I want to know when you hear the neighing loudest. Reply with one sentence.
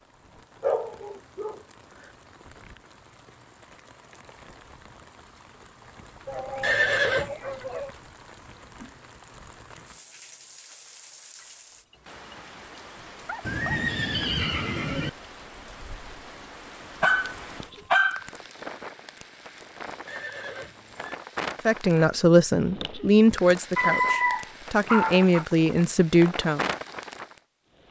The loudest moment of the neighing is at 7 seconds.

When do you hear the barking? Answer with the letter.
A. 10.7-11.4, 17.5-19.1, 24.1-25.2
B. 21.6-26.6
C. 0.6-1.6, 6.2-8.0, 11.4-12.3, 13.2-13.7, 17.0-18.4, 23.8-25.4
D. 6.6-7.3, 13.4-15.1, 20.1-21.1
C.